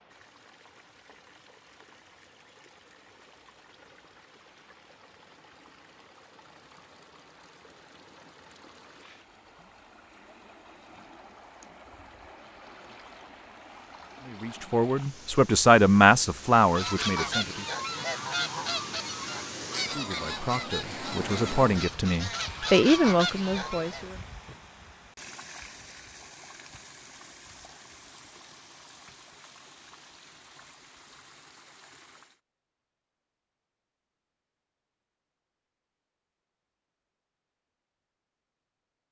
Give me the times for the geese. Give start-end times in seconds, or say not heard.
16.6-24.1.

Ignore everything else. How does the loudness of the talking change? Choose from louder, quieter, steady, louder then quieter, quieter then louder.
quieter then louder.